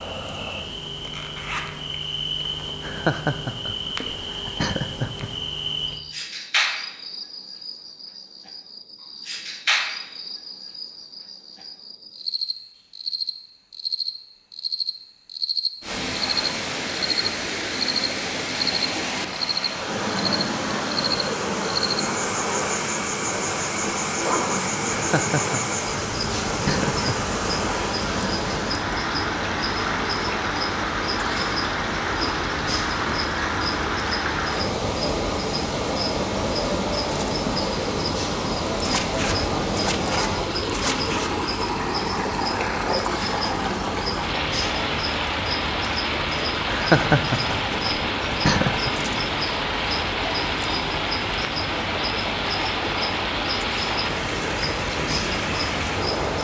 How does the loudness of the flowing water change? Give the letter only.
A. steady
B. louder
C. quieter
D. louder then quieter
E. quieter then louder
A.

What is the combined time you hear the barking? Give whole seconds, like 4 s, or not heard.
not heard.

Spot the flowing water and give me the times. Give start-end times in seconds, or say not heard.
15.8-56.4.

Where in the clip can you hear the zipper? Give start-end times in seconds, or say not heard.
1.0-2.5, 24.1-24.7, 38.8-41.3.